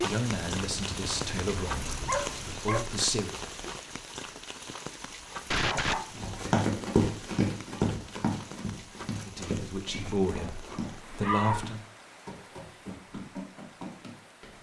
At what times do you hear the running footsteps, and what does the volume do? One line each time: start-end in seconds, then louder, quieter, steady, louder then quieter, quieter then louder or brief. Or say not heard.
6.2-14.5 quieter.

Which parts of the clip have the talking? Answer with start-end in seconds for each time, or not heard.
0.0-3.4, 9.2-11.8.